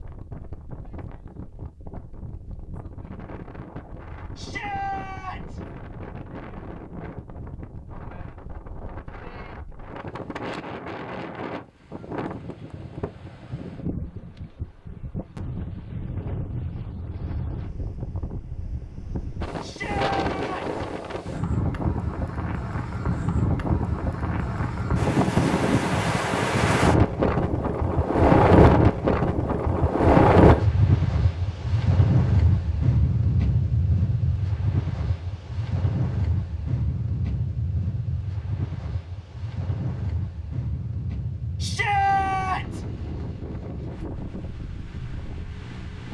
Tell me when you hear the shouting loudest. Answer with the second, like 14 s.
42 s.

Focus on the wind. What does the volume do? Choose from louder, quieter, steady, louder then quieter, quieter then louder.
louder then quieter.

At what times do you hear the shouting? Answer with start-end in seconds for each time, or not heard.
4.3-5.6, 19.6-20.6, 41.6-42.8.